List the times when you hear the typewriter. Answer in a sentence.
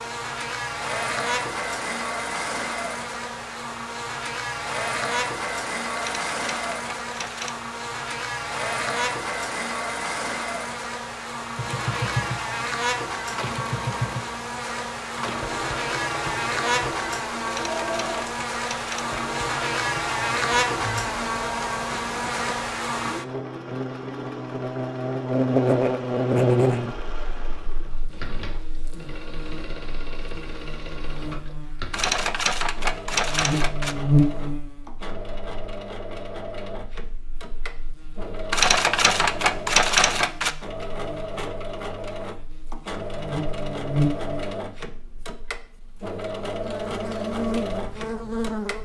You can hear the typewriter from 6.0 to 7.5 s, from 17.4 to 19.4 s, from 31.9 to 34.0 s and from 38.5 to 40.5 s.